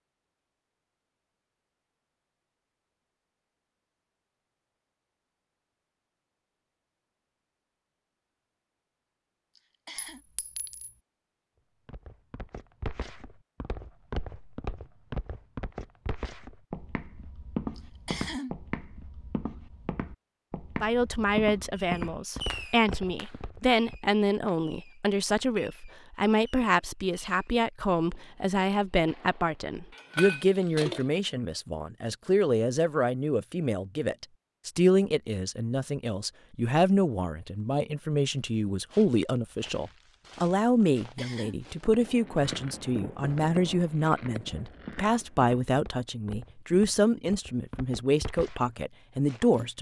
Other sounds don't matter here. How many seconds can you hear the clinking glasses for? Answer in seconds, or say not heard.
2 s.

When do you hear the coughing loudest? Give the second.
18 s.